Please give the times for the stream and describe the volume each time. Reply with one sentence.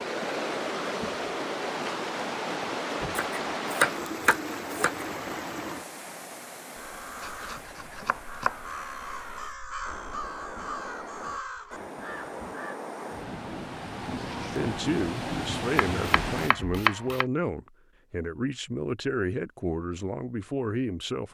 You can hear the stream from 0.0 to 16.5 s, getting quieter then louder.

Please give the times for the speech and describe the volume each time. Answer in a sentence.
The speech can be heard from 14.6 to 21.2 s, at a steady volume.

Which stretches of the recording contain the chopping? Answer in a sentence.
You can hear the chopping from 3.1 to 5.0 s, from 7.2 to 8.8 s and from 15.8 to 17.2 s.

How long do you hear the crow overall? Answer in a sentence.
You can hear the crow for 6 seconds altogether.